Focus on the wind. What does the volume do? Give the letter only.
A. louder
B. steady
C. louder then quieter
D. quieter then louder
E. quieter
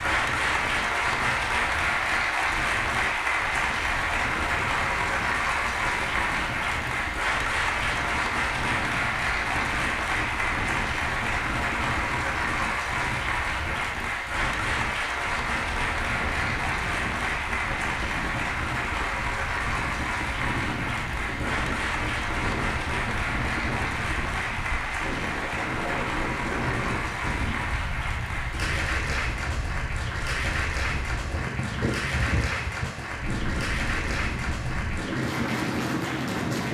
A.